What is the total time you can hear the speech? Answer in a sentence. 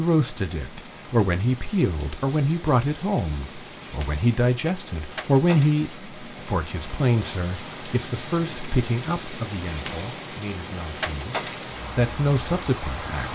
You can hear the speech for 13 seconds altogether.